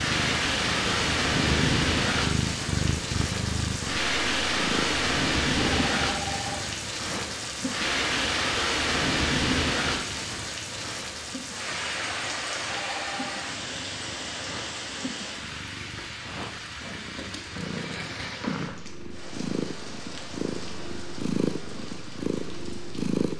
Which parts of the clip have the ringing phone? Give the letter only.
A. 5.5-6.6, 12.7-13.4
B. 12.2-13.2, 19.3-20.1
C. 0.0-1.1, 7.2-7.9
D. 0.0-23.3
A.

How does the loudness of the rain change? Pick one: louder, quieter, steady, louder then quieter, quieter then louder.
quieter.